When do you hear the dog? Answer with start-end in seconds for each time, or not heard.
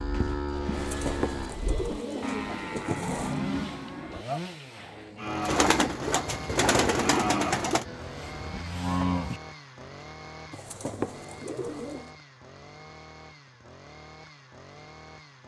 not heard.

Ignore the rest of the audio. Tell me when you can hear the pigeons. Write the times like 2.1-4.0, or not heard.
0.7-3.4, 5.4-7.8, 10.5-12.1.